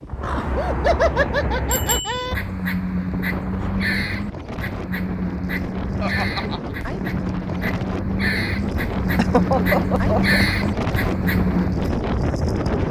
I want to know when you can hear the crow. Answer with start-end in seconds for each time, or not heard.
0.1-11.9.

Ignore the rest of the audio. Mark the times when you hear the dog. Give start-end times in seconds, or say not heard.
not heard.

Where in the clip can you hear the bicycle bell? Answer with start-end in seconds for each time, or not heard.
1.7-2.2.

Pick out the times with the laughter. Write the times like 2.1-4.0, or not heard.
0.3-2.4, 6.0-6.6, 9.2-10.4.